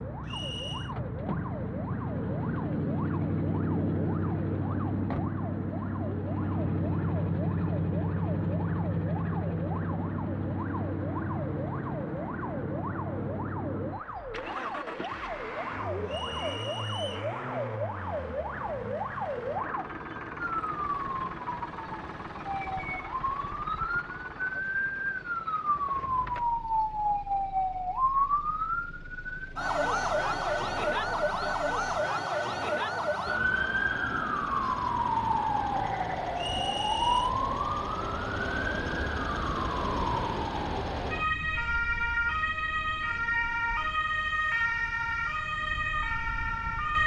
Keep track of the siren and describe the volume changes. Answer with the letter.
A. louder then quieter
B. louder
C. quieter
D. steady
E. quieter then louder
B.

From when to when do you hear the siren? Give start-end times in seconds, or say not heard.
0.0-47.0.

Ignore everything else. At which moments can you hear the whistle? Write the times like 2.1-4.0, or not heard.
0.2-0.9, 16.1-17.3, 36.4-37.3.